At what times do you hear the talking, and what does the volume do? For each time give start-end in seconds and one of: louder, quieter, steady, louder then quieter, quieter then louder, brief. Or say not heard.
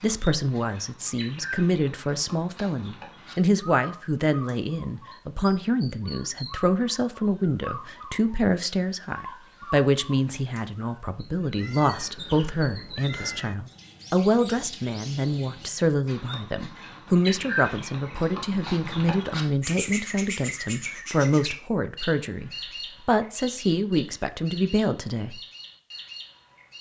0.0-25.4 steady.